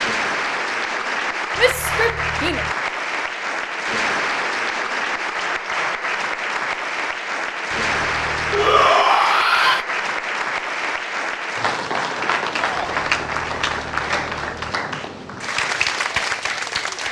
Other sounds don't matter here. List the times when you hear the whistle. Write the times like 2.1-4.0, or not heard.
not heard.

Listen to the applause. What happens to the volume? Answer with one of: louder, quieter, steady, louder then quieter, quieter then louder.
steady.